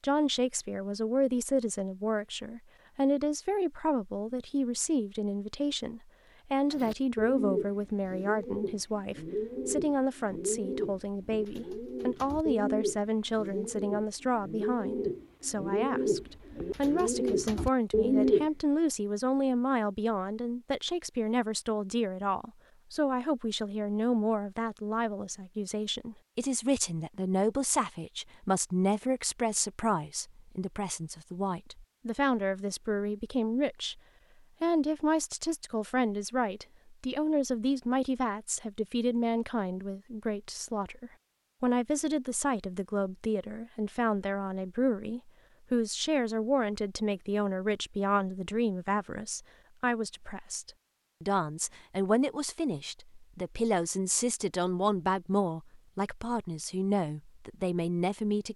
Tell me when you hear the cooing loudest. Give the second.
18 s.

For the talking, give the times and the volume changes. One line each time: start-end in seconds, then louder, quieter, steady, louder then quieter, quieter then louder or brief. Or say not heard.
0.0-34.0 steady
34.6-58.5 steady.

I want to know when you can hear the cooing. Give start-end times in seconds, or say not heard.
6.7-18.4.